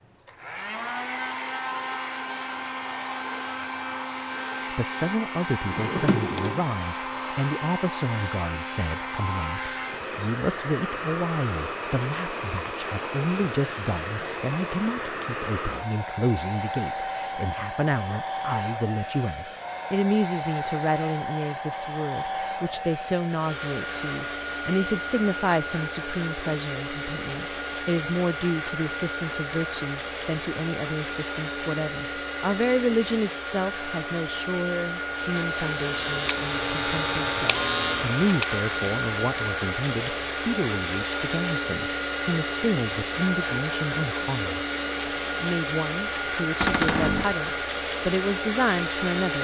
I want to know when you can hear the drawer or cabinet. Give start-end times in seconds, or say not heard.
5.7-6.7, 46.6-47.4.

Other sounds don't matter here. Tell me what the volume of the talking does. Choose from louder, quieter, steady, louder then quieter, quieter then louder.
steady.